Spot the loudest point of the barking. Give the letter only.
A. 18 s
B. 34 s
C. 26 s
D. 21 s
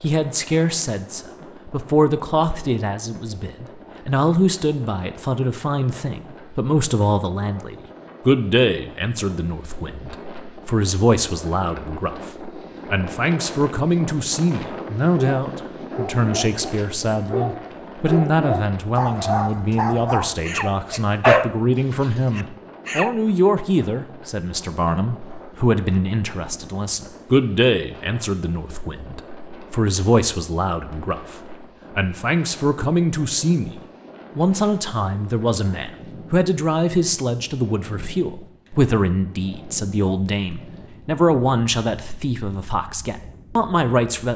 D.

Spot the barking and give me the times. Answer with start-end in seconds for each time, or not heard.
15.1-23.1.